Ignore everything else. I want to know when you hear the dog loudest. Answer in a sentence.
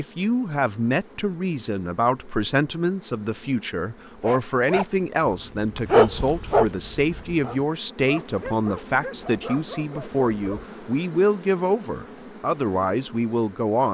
The volume of the dog peaks at 6 seconds.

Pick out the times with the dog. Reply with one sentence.
The dog can be heard from 4.0 to 10.7 s.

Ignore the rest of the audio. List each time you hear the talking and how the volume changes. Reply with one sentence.
The talking can be heard from 0.0 to 13.8 s, at a steady volume.